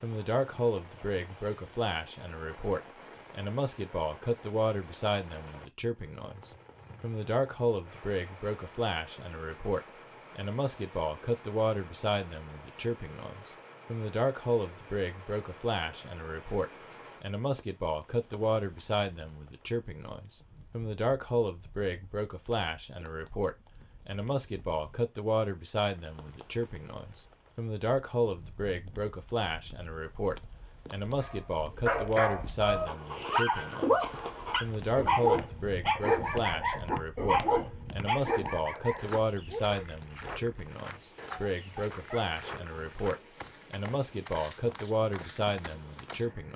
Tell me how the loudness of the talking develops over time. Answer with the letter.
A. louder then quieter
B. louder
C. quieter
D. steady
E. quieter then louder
D.